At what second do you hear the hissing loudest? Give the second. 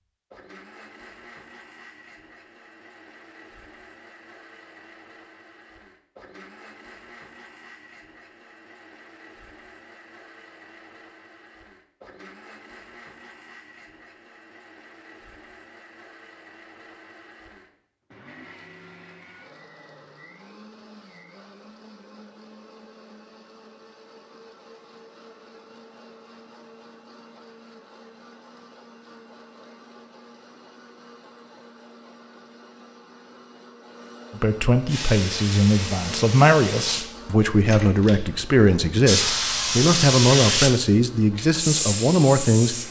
40 s.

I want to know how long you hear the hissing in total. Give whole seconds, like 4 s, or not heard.
8 s.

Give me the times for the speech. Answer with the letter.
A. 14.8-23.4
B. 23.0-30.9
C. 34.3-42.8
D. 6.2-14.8
C.